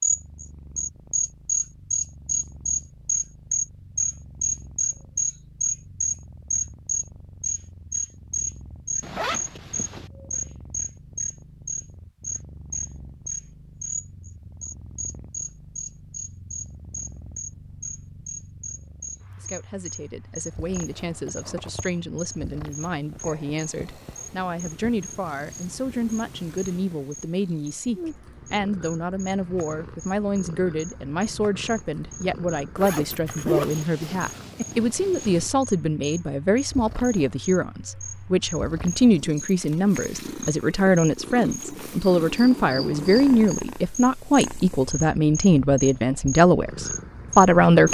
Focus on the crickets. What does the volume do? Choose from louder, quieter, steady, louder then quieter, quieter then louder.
quieter then louder.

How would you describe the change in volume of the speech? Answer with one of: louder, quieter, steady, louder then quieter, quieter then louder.
louder.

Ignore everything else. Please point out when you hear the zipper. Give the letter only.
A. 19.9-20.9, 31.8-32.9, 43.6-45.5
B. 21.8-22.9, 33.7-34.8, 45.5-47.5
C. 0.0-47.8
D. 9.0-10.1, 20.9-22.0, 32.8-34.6
D.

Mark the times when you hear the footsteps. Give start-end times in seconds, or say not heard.
not heard.